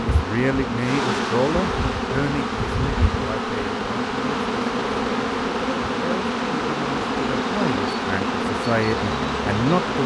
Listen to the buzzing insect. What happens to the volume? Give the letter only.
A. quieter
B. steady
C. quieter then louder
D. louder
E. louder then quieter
B.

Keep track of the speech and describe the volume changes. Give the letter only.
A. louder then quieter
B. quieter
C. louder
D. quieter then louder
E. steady
D.